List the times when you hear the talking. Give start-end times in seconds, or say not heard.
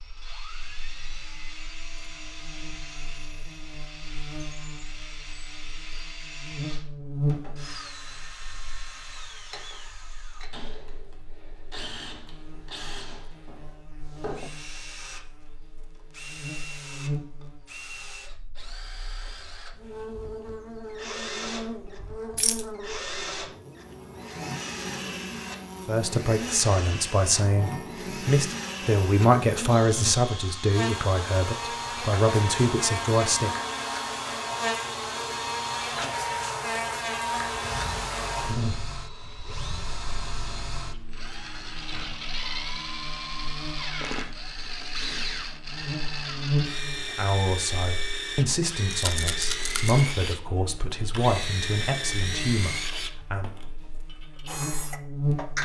25.9-33.5, 47.1-53.5.